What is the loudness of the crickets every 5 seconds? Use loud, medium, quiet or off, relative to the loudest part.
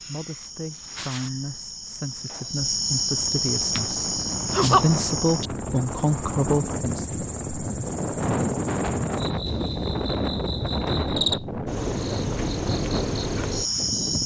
loud, medium, loud.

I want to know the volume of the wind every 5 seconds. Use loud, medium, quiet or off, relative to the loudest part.
medium, loud, loud.